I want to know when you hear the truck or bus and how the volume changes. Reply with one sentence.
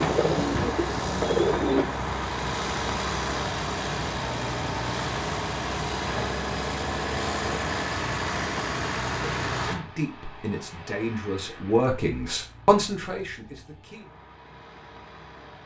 You can hear the truck or bus from 0.0 to 15.6 s, getting quieter.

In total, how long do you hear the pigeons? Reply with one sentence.
The pigeons can be heard for 2 seconds in total.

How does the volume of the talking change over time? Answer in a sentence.
The loudness of the talking goes up, then down.